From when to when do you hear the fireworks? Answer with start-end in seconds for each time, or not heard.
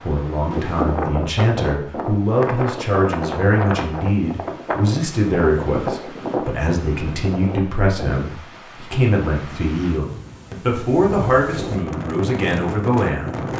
not heard.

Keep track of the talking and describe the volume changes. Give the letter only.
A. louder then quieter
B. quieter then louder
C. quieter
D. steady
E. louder
D.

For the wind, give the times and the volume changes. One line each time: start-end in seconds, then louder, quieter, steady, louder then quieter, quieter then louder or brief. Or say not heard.
0.0-13.5 quieter then louder.